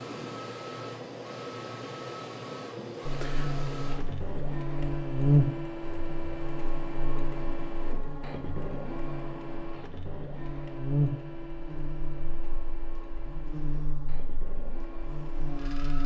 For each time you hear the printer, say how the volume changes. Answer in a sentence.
You can hear the printer from 0.0 to 16.0 s, getting quieter.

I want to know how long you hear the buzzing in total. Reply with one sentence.
The buzzing can be heard for 13 seconds in total.